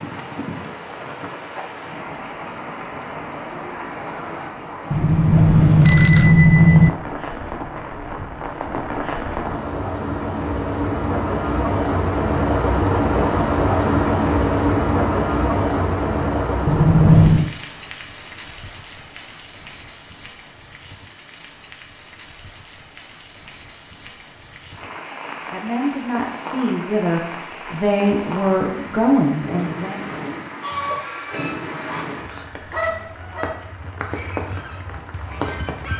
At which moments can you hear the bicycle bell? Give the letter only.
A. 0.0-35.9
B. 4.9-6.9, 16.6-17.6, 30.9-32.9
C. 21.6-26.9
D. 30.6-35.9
B.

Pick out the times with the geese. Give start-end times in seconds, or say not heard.
30.6-35.9.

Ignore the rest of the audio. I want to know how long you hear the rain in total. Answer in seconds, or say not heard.
36 s.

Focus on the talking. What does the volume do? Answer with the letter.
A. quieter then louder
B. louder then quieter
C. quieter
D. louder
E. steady
D.